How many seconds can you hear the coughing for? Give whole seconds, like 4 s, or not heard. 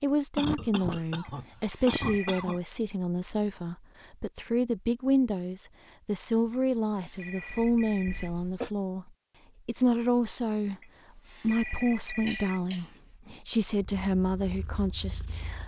4 s.